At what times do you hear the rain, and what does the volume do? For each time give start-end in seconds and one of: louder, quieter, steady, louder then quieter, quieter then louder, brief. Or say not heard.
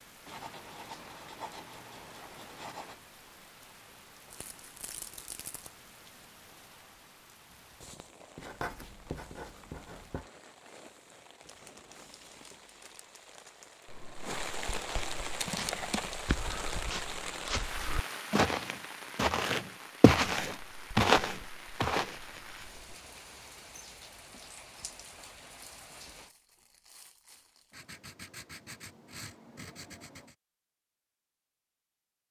0.0-26.4 louder then quieter.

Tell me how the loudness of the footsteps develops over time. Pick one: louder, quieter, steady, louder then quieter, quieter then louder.
louder.